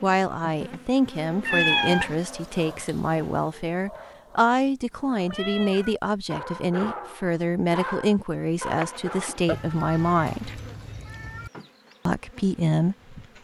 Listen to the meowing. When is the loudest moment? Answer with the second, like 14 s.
2 s.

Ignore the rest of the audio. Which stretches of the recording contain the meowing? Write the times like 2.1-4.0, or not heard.
1.4-2.1, 5.2-6.0, 9.4-11.5.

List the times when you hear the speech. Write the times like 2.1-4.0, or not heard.
0.0-10.6, 12.1-13.2.